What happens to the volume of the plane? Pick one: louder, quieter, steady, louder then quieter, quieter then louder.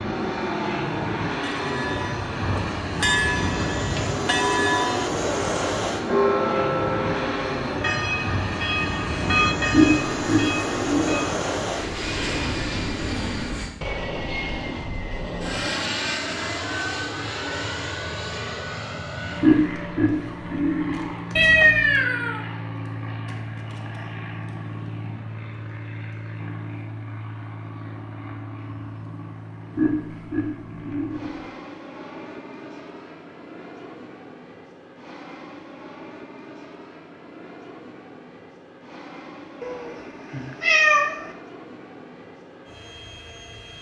quieter.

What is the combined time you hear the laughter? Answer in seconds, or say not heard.
5 s.